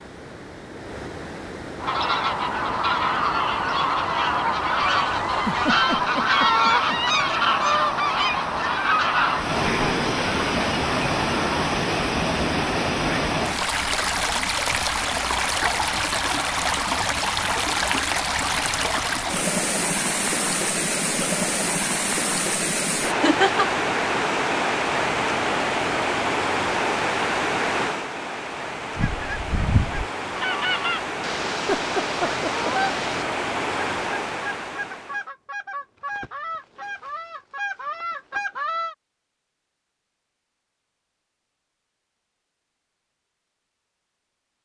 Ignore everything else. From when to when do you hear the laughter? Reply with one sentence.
You can hear the laughter from 5.5 to 7.0 s, from 23.1 to 23.8 s and from 31.5 to 32.7 s.